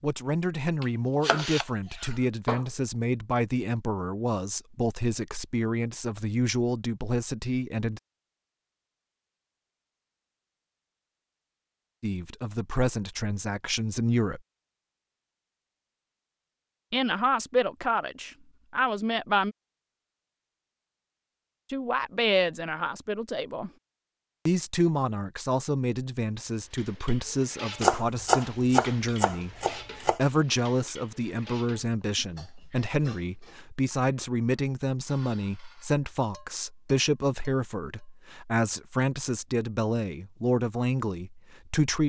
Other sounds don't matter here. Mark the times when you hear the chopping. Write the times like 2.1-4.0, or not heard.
0.8-2.6, 27.8-30.2.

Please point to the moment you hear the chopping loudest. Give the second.
28 s.